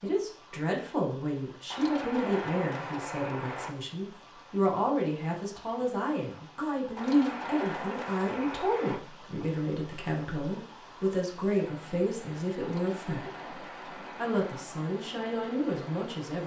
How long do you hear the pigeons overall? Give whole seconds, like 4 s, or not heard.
6 s.